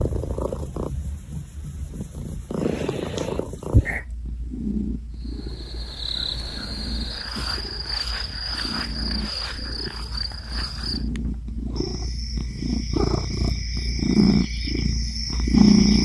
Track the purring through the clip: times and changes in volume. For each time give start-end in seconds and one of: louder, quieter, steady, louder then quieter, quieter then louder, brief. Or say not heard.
0.0-16.0 quieter then louder.